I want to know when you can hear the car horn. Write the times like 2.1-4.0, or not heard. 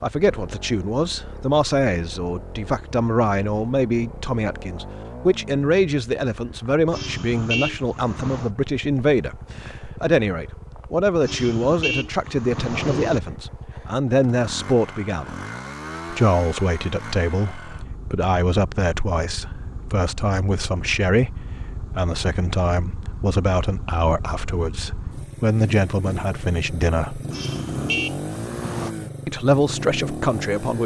6.9-8.5, 11.2-13.2, 27.3-28.9.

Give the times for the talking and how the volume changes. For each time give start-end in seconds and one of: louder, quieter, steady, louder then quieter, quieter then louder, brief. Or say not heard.
0.0-15.3 steady
16.1-27.2 steady
29.2-30.8 brief.